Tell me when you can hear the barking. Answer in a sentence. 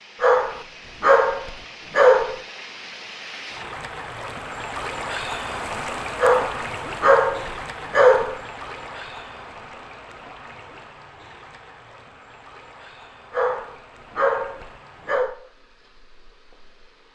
You can hear the barking from 0.2 to 2.4 s, from 6.2 to 8.4 s and from 13.3 to 15.3 s.